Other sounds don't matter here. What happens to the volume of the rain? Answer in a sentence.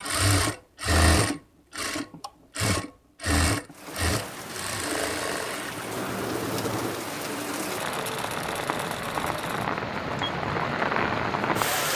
The loudness of the rain goes up.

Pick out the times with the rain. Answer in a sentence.
The rain can be heard from 3.7 to 11.9 s.